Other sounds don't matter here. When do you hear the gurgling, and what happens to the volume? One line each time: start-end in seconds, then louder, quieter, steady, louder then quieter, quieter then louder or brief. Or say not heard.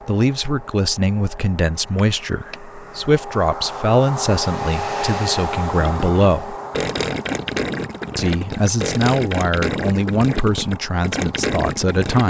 5.8-12.2 steady.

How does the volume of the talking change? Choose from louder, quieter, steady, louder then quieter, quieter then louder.
steady.